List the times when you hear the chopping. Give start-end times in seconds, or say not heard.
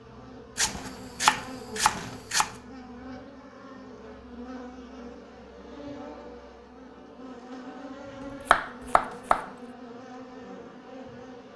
0.6-2.5, 8.4-9.5.